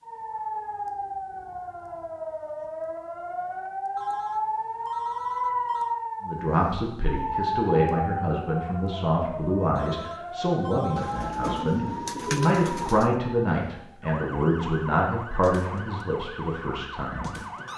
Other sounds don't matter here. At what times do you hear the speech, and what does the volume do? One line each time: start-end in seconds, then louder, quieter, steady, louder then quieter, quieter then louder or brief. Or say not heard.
6.2-17.4 steady.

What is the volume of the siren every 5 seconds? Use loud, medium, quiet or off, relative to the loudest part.
loud, loud, medium, medium.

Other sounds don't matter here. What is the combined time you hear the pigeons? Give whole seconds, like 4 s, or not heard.
2 s.